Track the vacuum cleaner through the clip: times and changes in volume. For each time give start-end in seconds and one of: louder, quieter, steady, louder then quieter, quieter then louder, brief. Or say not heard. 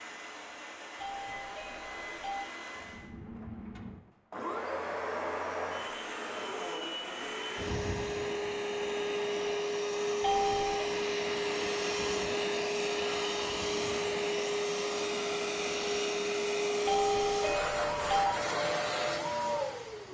0.0-20.1 louder.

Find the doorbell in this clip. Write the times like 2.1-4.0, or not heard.
1.0-2.5, 10.2-10.8, 16.9-18.4.